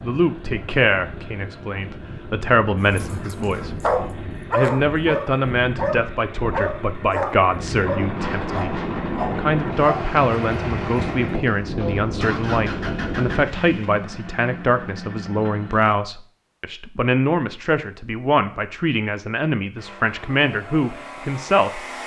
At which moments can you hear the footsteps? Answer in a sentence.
The footsteps can't be heard in this clip.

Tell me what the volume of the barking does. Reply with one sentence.
The volume of the barking goes down.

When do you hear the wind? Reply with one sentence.
The wind can be heard from 0.0 to 13.4 s.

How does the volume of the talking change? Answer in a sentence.
The loudness of the talking stays about the same.